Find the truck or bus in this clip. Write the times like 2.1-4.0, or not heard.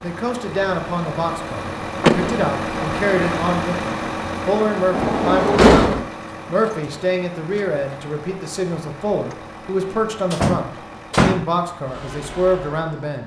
0.0-13.2.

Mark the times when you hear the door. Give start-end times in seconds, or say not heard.
2.0-2.5, 4.9-6.0, 10.3-11.4.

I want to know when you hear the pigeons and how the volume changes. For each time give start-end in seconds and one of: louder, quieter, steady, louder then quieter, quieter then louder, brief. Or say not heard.
not heard.